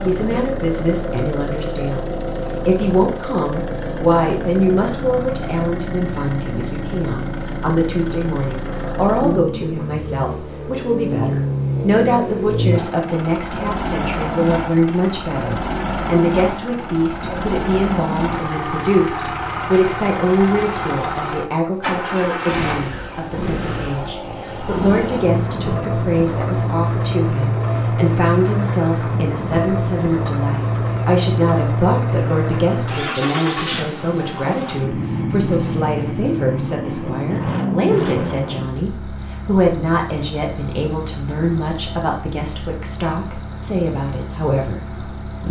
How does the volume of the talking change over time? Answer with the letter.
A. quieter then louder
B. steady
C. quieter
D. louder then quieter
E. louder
B.